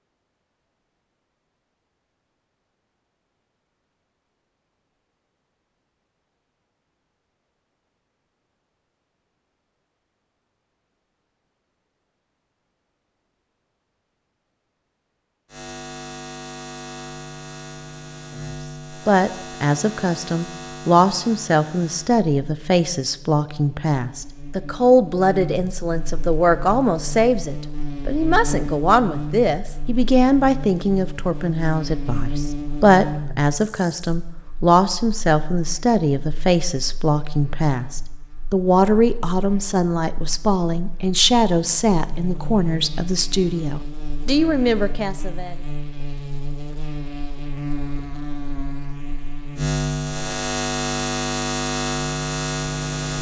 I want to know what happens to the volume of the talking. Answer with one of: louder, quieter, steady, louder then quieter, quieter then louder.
steady.